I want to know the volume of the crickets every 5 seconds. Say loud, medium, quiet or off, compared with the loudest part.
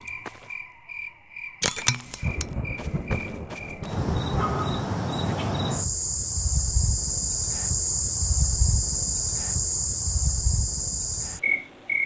medium, loud, loud.